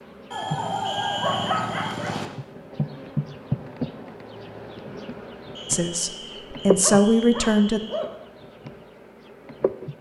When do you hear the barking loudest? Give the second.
1 s.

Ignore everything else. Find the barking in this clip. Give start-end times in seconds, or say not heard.
0.3-2.3, 6.8-8.1.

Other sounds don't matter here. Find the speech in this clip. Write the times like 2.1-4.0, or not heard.
5.7-7.8.